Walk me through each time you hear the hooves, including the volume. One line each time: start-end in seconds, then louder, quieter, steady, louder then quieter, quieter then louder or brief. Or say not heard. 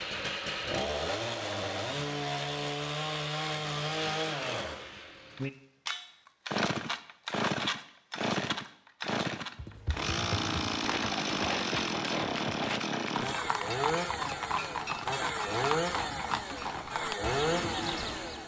9.6-18.4 steady.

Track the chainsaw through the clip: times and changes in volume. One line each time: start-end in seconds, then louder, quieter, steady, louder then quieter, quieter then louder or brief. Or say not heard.
0.0-18.4 steady.